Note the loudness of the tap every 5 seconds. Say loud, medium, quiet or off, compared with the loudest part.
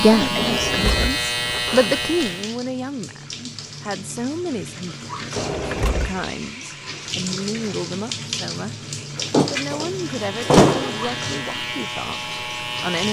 medium, loud, loud.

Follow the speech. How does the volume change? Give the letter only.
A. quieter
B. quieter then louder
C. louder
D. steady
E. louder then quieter
A.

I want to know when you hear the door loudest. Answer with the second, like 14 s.
11 s.